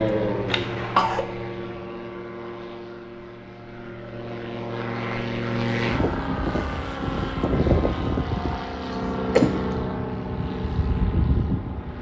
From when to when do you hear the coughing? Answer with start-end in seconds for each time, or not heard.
0.5-1.2, 8.9-9.6.